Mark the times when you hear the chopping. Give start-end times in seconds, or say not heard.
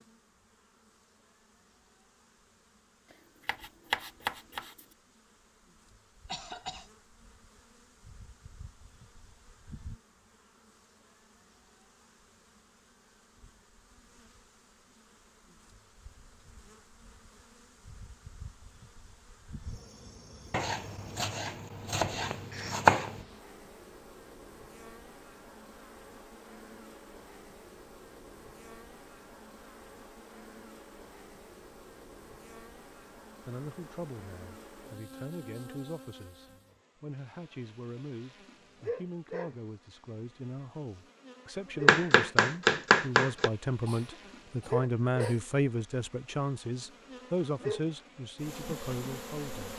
3.5-4.8, 20.5-23.2, 41.9-43.5.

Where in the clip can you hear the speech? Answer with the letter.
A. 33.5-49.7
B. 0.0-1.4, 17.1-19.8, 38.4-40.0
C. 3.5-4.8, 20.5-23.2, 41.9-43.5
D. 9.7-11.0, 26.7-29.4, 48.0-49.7
A.